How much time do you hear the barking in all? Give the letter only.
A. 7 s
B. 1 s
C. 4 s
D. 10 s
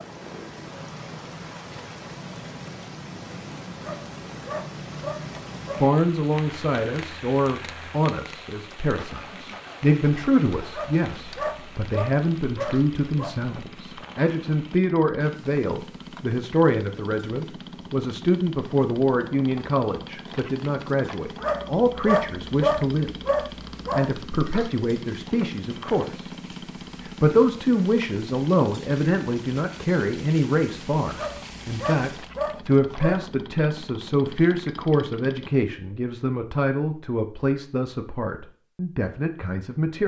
D.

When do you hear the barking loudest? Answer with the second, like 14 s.
23 s.